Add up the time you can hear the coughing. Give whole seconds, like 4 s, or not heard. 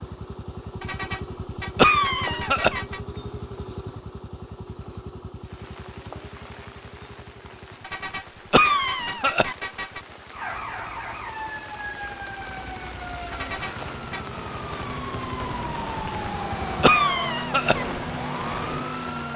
3 s.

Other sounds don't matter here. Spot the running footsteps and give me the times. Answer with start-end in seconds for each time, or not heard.
not heard.